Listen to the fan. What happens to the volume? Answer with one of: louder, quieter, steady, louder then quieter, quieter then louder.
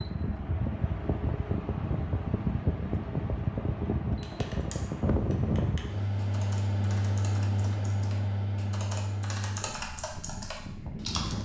quieter.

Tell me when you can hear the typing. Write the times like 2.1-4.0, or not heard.
4.2-11.3.